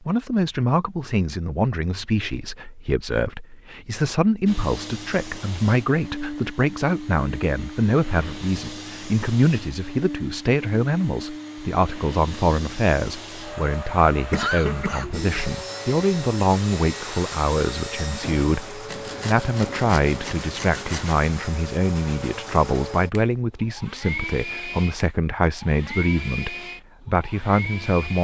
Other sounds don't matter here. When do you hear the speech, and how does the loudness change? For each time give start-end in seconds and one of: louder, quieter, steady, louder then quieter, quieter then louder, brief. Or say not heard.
0.1-28.2 steady.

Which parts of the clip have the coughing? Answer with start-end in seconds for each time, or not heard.
14.1-15.6.